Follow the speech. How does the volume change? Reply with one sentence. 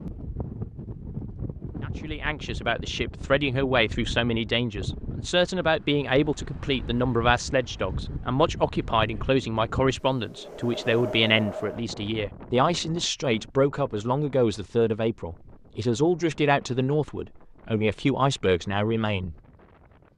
The volume of the speech stays about the same.